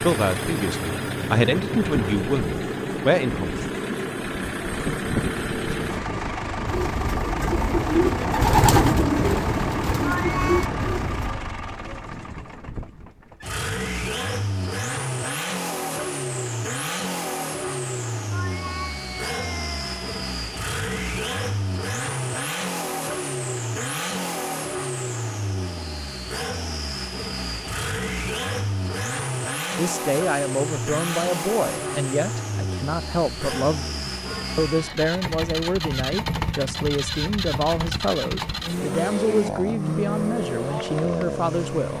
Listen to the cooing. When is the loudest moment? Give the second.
9 s.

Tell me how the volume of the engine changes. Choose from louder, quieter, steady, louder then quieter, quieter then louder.
steady.